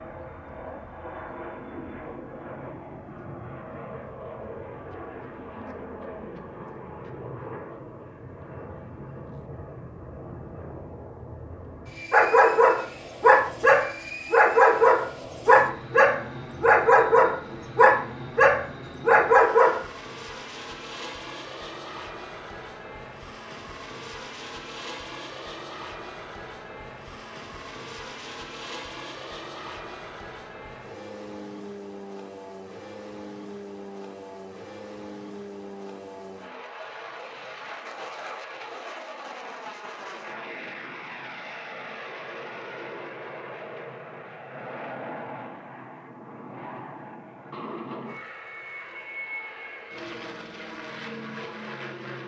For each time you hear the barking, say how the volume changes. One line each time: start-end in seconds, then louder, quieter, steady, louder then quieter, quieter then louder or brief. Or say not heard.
12.1-19.8 steady.